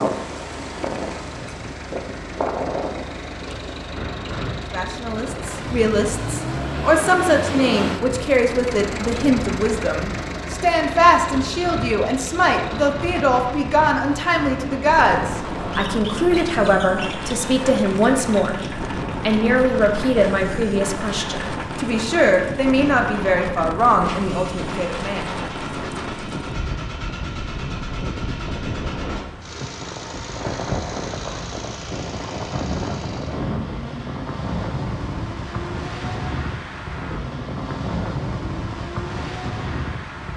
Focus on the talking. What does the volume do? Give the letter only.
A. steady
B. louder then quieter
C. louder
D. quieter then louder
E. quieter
A.